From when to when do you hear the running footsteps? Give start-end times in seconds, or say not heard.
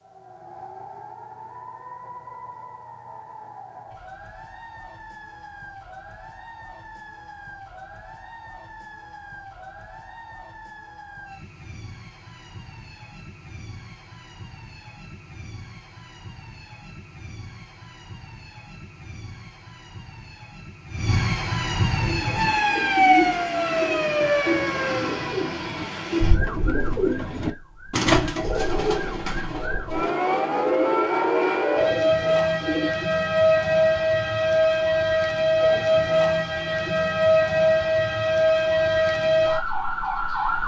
not heard.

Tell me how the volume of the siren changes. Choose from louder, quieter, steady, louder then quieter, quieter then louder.
louder.